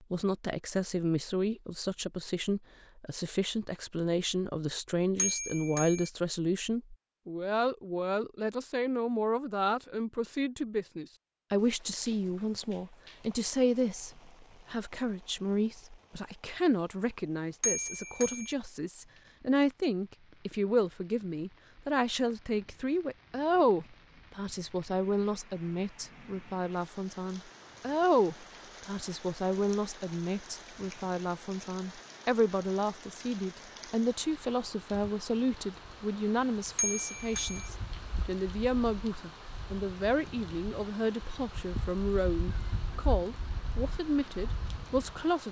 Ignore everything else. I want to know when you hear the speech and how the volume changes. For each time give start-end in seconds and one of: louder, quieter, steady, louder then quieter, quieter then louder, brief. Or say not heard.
0.1-45.4 steady.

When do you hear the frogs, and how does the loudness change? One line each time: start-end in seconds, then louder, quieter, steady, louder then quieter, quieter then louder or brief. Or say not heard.
not heard.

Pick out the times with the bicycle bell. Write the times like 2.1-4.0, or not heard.
5.2-6.1, 17.6-18.6, 36.8-37.7.